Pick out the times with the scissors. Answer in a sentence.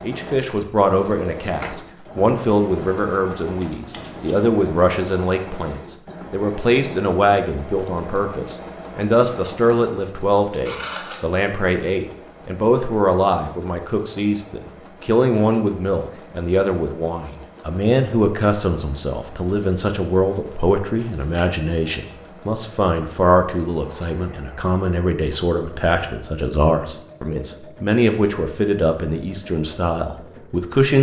You can hear the scissors from 3.4 to 4.4 s, from 10.7 to 11.2 s and from 20.9 to 21.6 s.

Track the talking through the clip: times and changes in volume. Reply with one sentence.
The talking can be heard from 0.0 to 30.9 s, at a steady volume.